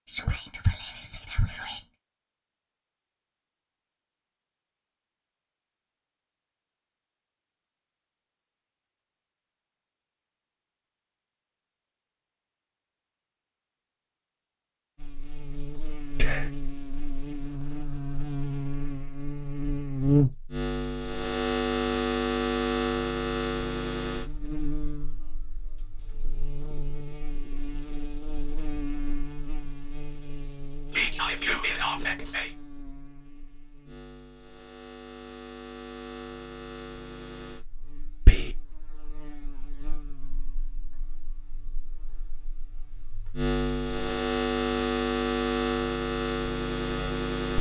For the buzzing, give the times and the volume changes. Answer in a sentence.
The buzzing can be heard from 15.0 to 47.5 s, getting quieter then louder.